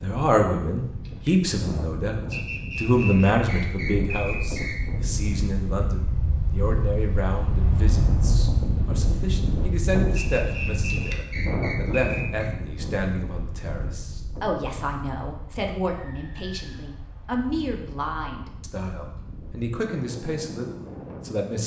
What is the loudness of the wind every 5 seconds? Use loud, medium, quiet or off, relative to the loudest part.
medium, loud, loud, quiet, medium.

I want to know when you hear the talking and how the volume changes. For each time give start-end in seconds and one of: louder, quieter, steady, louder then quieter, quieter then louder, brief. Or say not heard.
0.0-21.6 quieter.